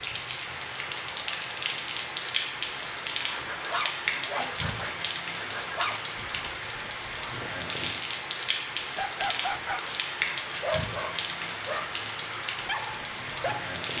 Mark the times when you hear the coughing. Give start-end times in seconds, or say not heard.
not heard.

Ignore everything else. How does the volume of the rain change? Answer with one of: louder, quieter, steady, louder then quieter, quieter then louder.
steady.